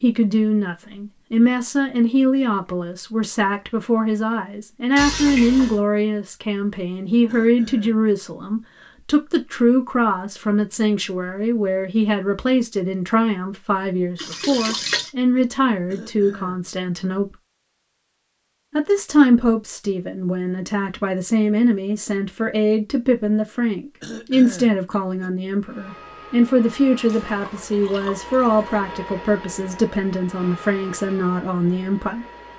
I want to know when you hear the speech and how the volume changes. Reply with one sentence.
The speech can be heard from 0.0 to 17.4 s, at a steady volume; and from 18.7 to 32.2 s, at a steady volume.